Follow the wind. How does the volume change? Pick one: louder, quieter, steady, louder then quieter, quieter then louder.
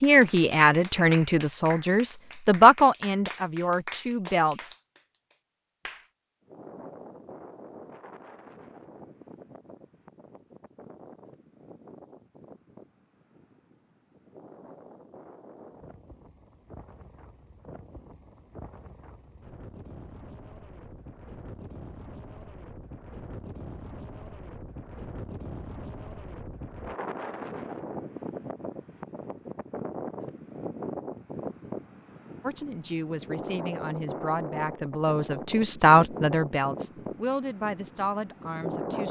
louder.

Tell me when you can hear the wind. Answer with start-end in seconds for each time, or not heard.
6.5-39.0.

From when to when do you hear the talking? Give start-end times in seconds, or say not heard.
0.0-4.8, 32.4-39.0.